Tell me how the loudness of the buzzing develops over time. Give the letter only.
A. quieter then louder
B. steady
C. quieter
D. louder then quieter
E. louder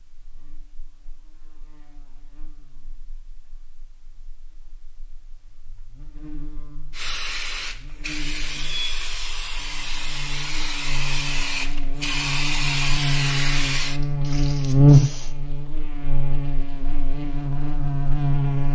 E.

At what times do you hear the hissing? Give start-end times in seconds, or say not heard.
6.9-15.3.